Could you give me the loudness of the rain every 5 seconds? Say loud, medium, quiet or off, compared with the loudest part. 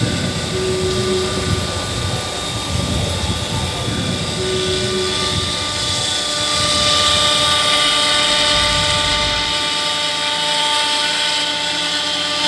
loud, medium, off.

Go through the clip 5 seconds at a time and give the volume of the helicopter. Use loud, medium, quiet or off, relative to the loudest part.
medium, loud, loud.